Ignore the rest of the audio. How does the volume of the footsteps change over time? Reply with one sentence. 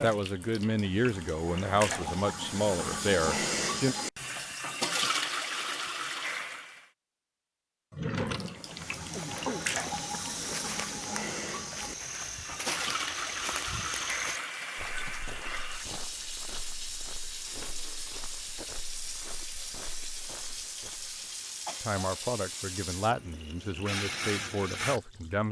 The volume of the footsteps goes down.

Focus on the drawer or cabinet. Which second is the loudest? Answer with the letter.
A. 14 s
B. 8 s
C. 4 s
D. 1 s
B.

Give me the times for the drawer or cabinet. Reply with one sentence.
The drawer or cabinet can be heard from 7.9 to 9.4 s.